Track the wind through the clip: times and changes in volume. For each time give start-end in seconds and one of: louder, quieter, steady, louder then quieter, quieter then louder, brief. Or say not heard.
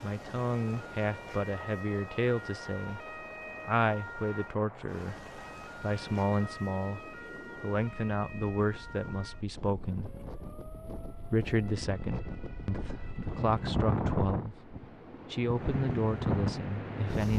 0.0-17.3 louder.